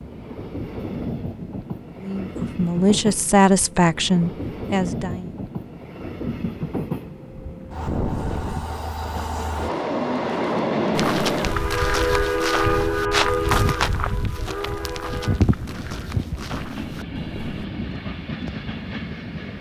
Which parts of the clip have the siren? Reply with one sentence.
The siren can't be heard in this clip.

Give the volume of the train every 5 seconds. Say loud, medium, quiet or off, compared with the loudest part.
medium, medium, loud, medium.